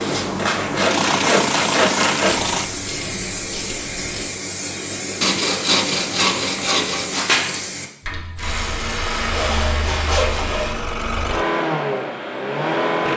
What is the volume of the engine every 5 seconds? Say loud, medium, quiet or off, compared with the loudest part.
loud, medium, loud.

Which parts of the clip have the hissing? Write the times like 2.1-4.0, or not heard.
0.0-7.9.